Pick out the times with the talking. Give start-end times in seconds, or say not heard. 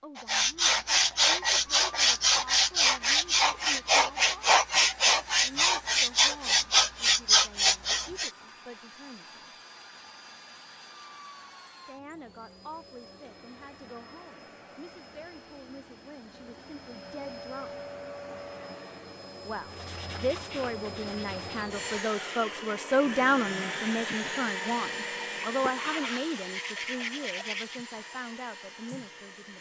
0.0-4.5, 5.4-9.5, 11.8-17.8, 19.4-29.5.